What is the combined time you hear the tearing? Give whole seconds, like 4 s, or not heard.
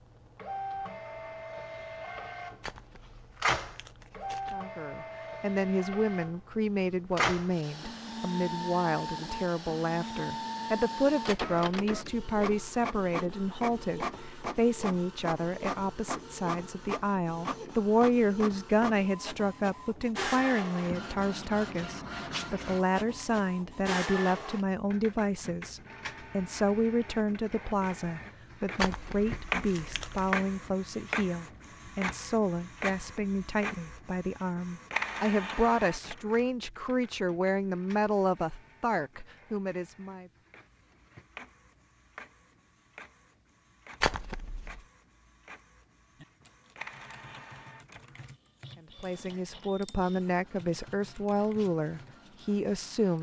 4 s.